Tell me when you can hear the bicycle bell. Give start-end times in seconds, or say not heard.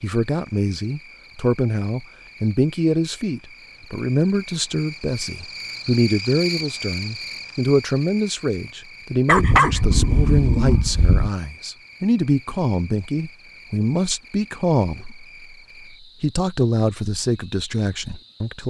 not heard.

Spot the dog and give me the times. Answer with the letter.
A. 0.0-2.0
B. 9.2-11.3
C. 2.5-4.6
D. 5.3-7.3
B.